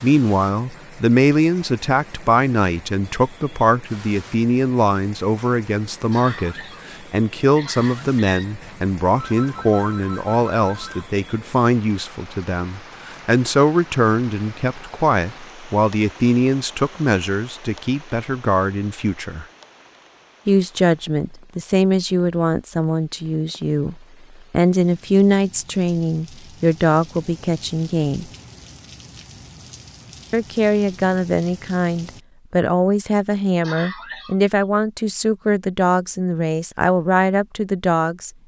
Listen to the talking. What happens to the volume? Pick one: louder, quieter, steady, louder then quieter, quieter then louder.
steady.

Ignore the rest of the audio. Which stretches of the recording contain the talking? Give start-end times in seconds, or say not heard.
0.0-19.4, 20.4-28.3, 30.3-38.3.